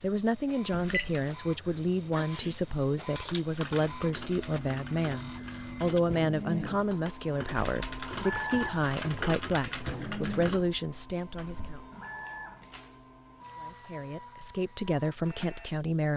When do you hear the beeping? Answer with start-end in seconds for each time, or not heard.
0.7-1.4.